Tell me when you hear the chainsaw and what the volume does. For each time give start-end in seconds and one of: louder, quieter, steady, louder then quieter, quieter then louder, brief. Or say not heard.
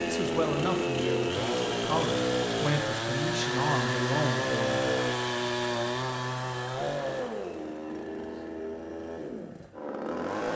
0.0-10.5 quieter.